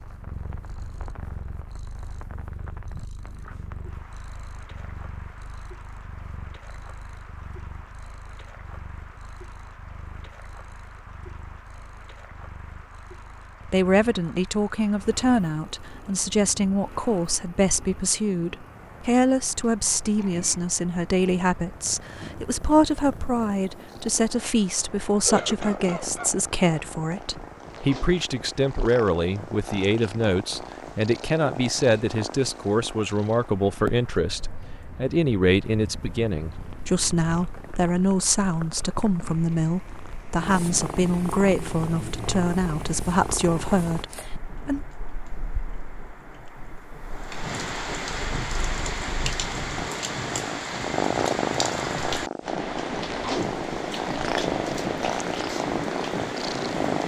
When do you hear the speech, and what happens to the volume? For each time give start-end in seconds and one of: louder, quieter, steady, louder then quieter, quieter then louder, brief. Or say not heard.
13.7-44.8 steady.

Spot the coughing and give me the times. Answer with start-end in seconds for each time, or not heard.
25.2-26.3.